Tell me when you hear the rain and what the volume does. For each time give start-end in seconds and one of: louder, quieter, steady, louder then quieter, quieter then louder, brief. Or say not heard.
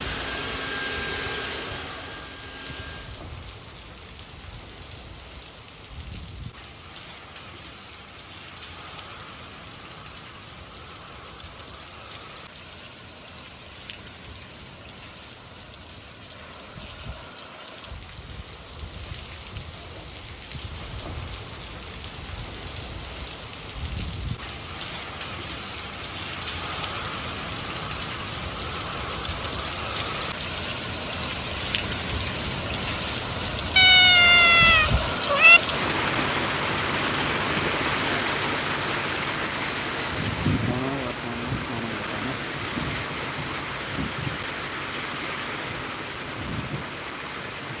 0.2-47.7 louder.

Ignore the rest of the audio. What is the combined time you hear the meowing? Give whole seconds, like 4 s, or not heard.
2 s.